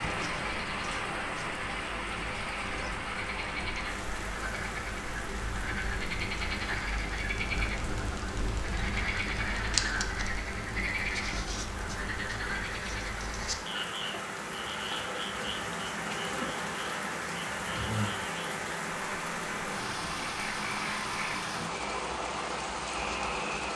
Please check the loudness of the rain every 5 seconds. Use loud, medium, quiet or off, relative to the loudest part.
loud, medium, medium, loud, loud.